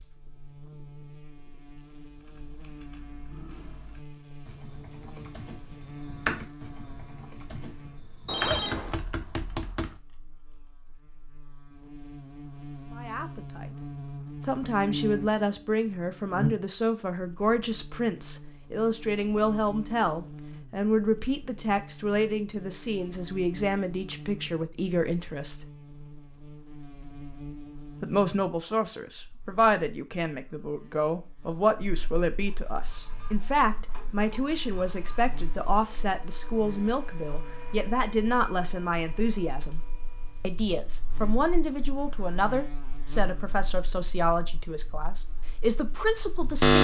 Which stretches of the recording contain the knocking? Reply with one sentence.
You can hear the knocking from 8.4 to 9.9 s.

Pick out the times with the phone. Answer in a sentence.
The phone can be heard from 8.2 to 9.0 s.